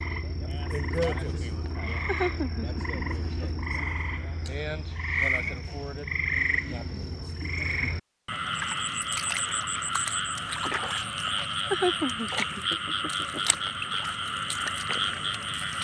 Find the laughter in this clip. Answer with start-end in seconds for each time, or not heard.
1.6-3.6, 11.2-13.6.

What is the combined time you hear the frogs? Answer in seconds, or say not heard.
16 s.